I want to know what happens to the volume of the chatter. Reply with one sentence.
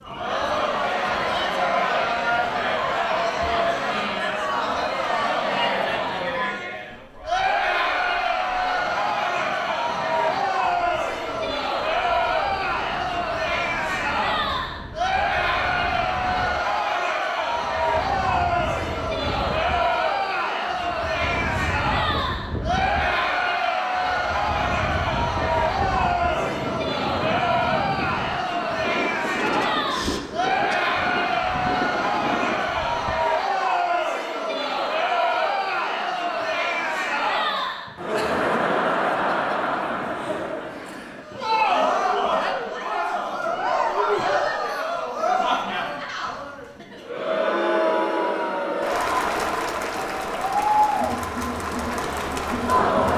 The loudness of the chatter stays about the same.